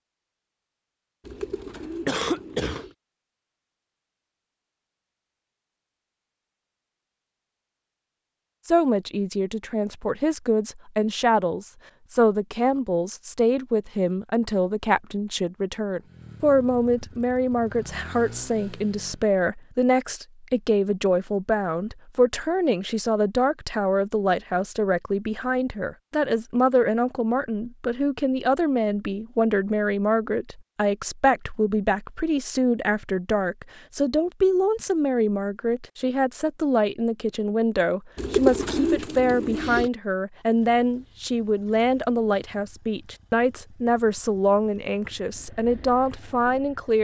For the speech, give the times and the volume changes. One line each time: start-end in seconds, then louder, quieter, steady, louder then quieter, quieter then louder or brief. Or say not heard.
8.7-47.0 steady.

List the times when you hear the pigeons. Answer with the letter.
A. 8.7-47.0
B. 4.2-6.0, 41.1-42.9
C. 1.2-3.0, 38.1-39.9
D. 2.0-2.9
C.